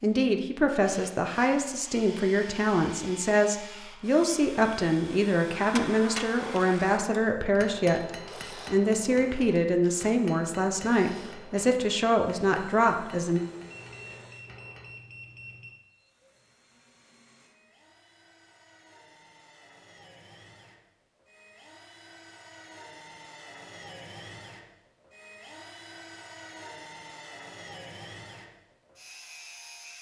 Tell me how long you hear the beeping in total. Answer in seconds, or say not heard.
2 s.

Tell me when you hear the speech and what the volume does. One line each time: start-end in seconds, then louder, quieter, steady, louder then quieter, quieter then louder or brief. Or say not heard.
0.0-13.4 steady.